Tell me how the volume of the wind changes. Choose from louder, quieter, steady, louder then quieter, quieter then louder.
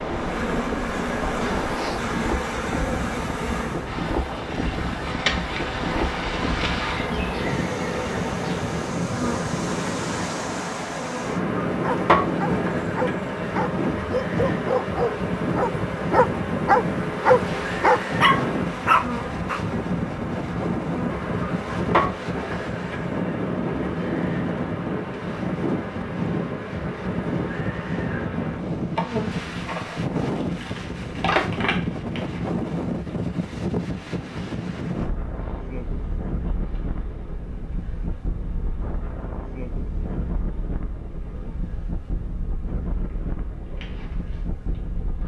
quieter.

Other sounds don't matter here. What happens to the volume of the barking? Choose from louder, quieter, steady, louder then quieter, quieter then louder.
louder.